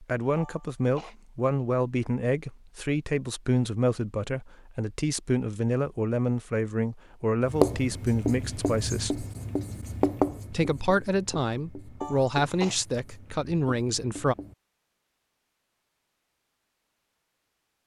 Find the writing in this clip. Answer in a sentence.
The writing can be heard from 7.4 to 14.6 s.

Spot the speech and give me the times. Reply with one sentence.
The speech can be heard from 0.0 to 9.2 s and from 10.5 to 14.3 s.